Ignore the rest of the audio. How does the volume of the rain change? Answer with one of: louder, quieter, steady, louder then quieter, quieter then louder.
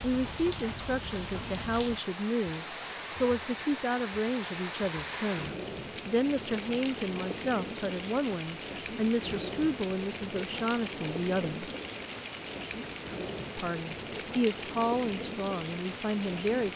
steady.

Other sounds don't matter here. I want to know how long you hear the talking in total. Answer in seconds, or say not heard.
15 s.